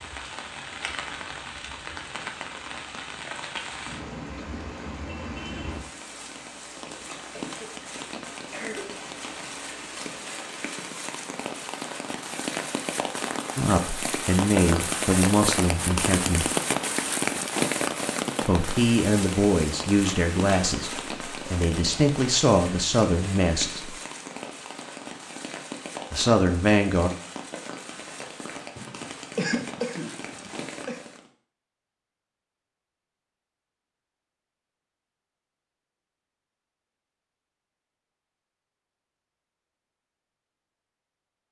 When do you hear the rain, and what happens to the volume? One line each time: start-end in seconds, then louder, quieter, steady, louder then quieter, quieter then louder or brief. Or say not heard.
0.0-31.3 louder then quieter.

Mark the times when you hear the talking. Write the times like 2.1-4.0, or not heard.
13.6-16.5, 18.4-23.9, 26.1-27.1.